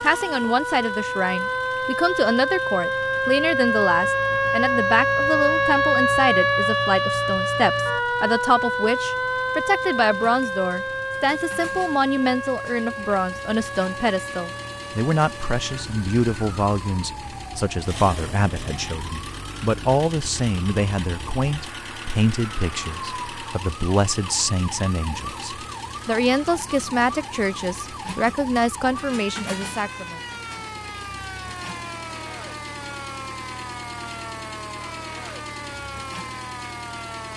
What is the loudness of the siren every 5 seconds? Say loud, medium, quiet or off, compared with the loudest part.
loud, loud, medium, quiet, quiet, quiet, quiet, quiet.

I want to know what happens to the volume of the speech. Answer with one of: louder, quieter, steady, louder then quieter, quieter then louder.
steady.